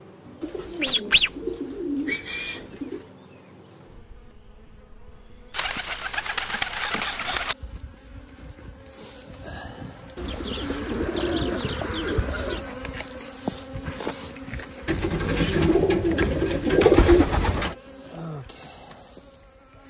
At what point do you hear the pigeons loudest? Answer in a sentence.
The loudest moment of the pigeons is at 17 seconds.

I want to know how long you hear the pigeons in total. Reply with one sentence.
The pigeons can be heard for 10 seconds in total.